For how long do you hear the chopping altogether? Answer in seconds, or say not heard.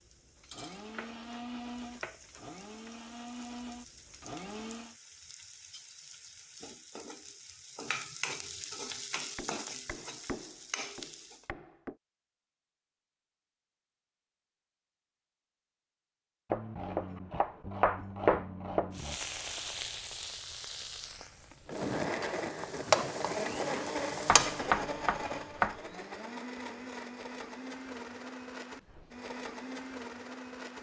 9 s.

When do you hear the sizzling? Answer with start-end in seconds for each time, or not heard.
0.0-11.5, 18.9-24.8.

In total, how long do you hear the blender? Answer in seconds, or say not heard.
14 s.